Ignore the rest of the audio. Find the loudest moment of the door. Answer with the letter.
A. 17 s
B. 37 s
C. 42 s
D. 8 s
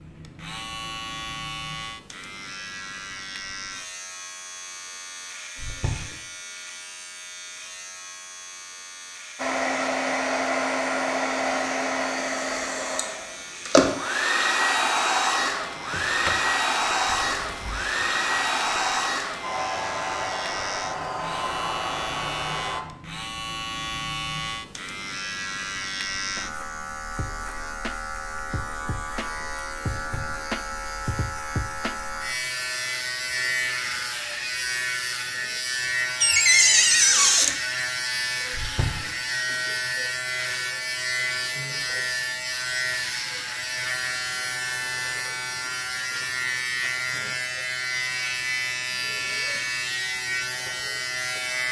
B.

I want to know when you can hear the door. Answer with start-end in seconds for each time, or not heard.
15.8-16.4, 17.0-18.1, 36.2-37.5.